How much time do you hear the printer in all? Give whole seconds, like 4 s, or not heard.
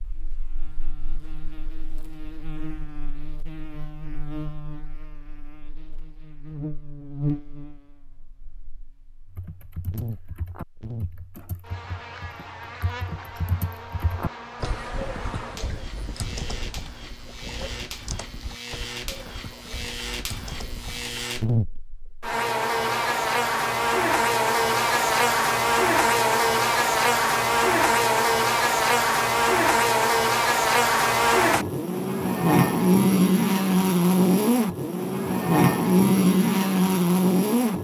not heard.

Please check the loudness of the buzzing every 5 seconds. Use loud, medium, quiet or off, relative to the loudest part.
quiet, quiet, quiet, quiet, medium, loud, loud, loud.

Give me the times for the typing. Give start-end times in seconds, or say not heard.
9.3-21.2.